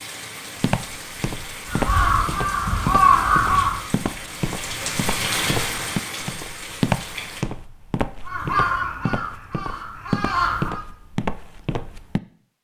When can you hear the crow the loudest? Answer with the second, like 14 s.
3 s.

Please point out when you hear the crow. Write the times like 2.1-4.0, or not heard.
1.6-3.9, 8.2-10.8.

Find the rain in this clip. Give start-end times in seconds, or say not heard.
0.0-7.5.